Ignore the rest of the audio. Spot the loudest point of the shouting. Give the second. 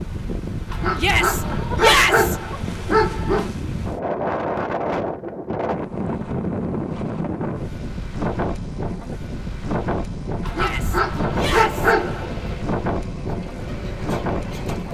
2 s.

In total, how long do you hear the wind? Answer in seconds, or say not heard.
15 s.